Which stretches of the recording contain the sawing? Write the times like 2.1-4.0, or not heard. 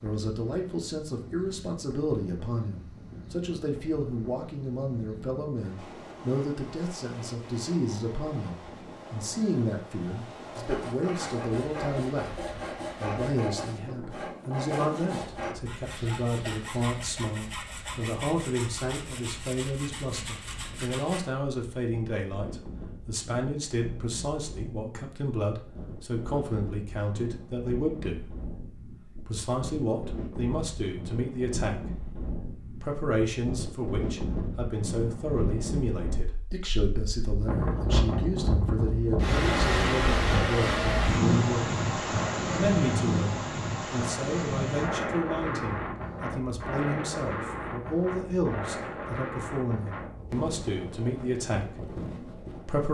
10.6-21.2.